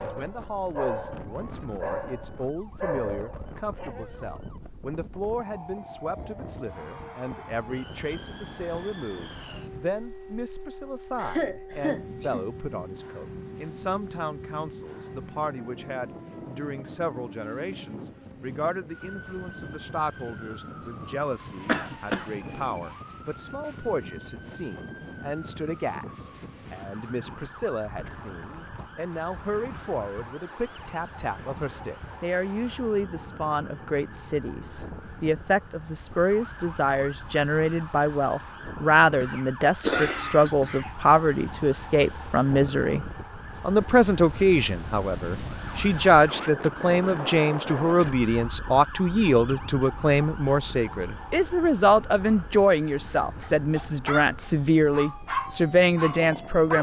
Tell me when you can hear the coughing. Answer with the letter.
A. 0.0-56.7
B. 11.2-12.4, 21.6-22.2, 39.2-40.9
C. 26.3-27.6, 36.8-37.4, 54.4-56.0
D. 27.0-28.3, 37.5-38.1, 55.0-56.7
B.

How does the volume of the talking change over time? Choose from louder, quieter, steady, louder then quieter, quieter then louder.
louder.